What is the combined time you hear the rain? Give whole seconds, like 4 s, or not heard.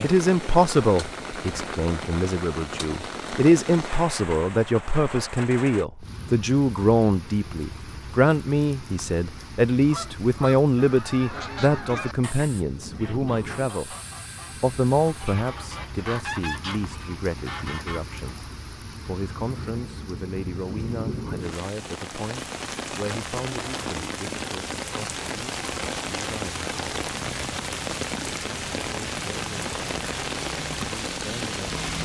32 s.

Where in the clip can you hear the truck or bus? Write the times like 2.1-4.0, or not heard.
not heard.